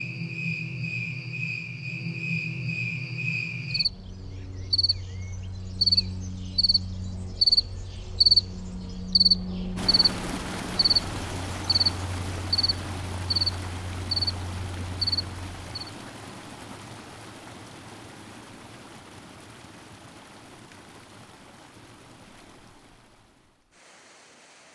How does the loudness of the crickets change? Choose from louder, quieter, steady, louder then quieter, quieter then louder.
louder then quieter.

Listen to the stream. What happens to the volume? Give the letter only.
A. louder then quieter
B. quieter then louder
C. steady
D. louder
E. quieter
E.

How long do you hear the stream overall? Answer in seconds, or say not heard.
15 s.